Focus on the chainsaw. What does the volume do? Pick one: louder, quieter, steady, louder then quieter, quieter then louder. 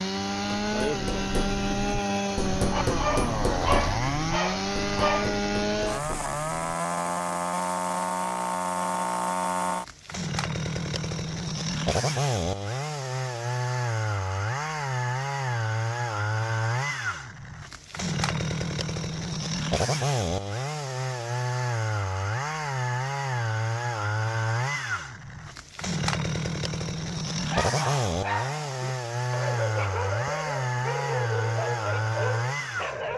steady.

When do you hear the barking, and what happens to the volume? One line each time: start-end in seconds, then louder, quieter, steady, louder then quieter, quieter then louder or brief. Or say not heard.
2.5-5.4 brief
27.4-33.1 steady.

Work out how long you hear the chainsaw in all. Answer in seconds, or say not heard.
33 s.